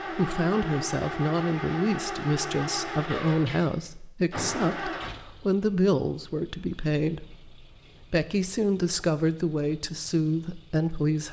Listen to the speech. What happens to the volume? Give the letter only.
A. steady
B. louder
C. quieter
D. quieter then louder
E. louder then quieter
A.